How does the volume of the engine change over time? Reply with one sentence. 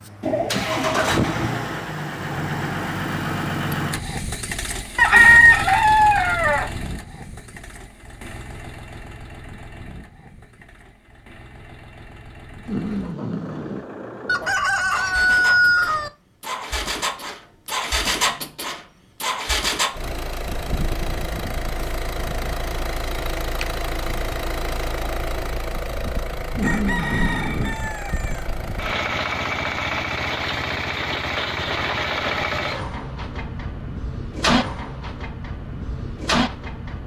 The volume of the engine goes down, then up.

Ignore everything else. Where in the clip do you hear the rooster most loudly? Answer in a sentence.
The loudest moment of the rooster is at 5 seconds.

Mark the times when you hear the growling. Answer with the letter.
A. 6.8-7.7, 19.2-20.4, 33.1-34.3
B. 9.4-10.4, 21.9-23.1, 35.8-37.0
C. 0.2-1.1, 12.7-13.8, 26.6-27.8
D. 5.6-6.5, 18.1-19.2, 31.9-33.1
C.